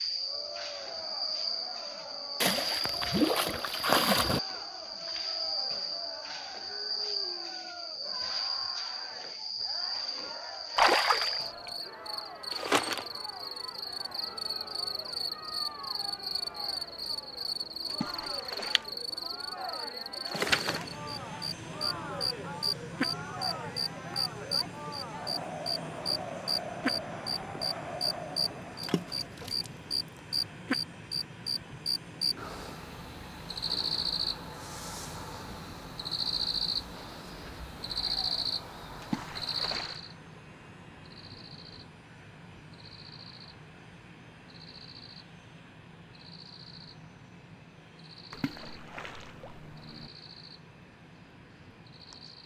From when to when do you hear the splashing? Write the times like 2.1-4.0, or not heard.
2.4-4.4, 10.8-11.7, 17.9-18.9, 28.8-30.2, 39.0-40.0, 48.3-50.1.